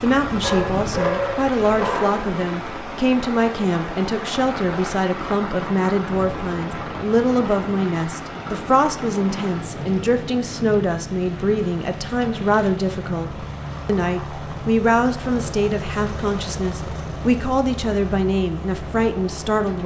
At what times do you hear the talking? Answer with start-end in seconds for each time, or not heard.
0.0-19.8.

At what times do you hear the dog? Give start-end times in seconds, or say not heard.
0.4-2.2.